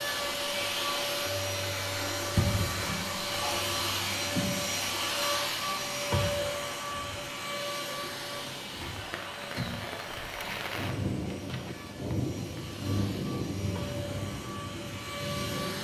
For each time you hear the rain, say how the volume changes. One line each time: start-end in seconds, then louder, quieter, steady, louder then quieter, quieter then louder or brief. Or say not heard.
0.0-15.7 louder.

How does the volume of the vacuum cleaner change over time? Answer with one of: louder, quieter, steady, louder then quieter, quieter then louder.
quieter.